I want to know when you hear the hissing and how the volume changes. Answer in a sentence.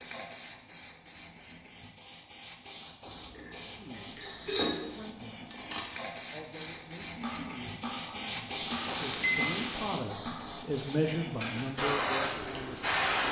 The hissing can be heard from 0.0 to 13.2 s, getting louder.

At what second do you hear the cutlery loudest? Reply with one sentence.
The volume of the cutlery peaks at 5 seconds.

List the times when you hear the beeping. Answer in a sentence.
The beeping can be heard from 8.7 to 9.9 s.